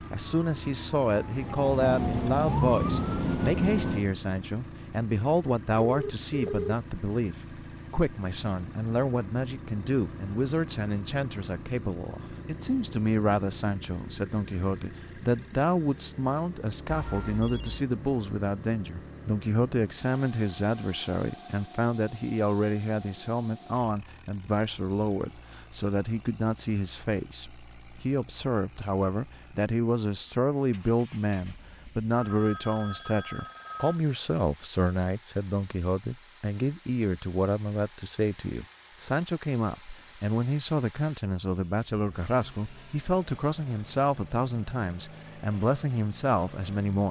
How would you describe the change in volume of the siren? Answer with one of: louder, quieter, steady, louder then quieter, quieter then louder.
louder.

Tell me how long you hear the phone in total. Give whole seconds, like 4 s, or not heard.
4 s.